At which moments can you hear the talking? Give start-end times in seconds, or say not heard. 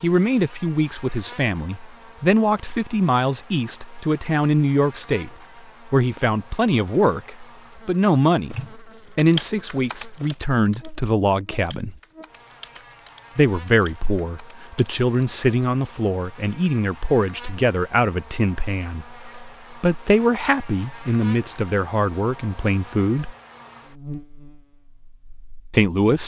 0.0-11.9, 13.3-23.4, 25.7-26.2.